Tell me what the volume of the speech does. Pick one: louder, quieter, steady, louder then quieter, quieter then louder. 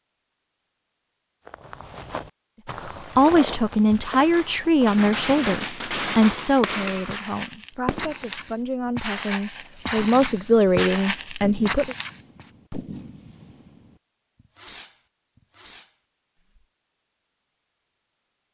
quieter then louder.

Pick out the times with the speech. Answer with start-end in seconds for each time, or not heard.
2.9-11.9.